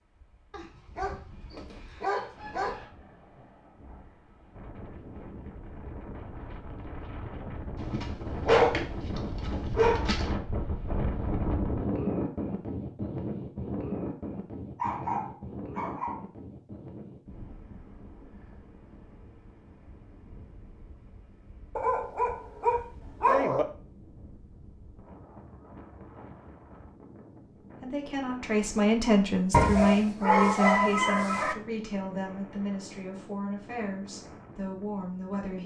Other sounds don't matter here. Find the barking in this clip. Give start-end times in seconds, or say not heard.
0.5-2.9, 7.8-10.3, 14.8-16.2, 21.8-23.6, 29.5-31.6.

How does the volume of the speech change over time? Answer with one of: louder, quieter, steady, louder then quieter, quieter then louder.
quieter.